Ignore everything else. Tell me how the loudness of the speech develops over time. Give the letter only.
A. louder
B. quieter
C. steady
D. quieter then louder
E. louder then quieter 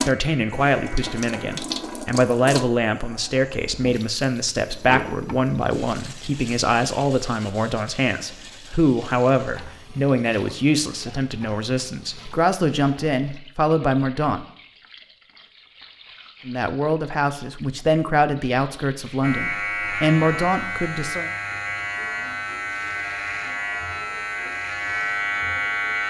C.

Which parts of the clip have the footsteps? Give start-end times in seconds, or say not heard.
not heard.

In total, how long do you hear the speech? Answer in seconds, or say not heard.
19 s.